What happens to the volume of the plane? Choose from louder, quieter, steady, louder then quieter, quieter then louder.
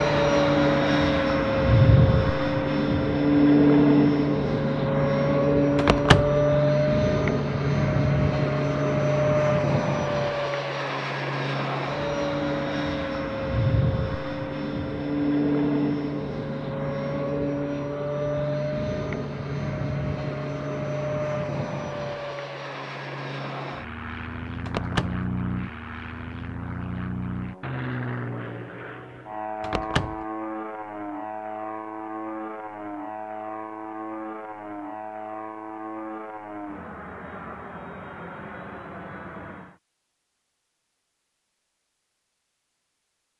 quieter.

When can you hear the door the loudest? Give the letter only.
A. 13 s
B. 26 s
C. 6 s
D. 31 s
C.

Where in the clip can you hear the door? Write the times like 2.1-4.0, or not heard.
5.8-6.4, 24.6-25.2, 29.6-30.2.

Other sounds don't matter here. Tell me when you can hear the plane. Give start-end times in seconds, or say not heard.
0.0-39.8.